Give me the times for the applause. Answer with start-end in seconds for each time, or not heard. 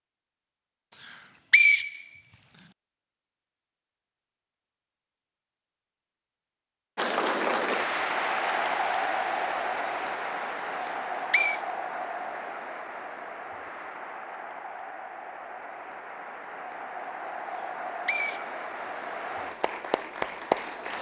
7.0-20.9.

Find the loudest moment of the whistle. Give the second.
2 s.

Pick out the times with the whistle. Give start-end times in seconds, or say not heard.
1.0-2.6, 10.8-11.6, 17.6-18.7.